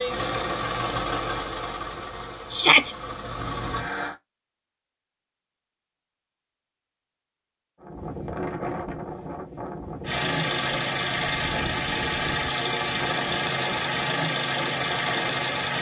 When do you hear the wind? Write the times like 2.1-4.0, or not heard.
7.8-15.7.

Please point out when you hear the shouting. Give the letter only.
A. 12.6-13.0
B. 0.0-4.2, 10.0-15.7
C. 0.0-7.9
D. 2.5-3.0
D.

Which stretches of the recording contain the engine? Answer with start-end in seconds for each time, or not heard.
0.0-4.2, 10.0-15.7.